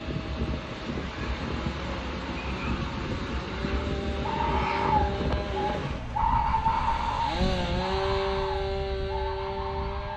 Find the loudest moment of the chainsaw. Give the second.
8 s.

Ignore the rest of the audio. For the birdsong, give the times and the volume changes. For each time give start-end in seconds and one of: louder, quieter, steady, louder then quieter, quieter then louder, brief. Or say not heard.
4.2-10.1 quieter.